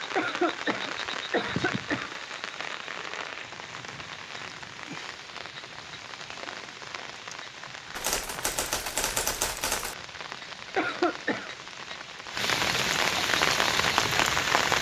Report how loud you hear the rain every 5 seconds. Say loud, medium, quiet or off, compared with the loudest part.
medium, quiet, loud.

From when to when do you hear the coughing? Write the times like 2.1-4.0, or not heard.
0.1-2.1, 10.8-11.6.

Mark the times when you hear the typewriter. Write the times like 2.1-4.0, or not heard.
8.0-9.9.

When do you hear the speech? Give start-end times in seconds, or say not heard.
not heard.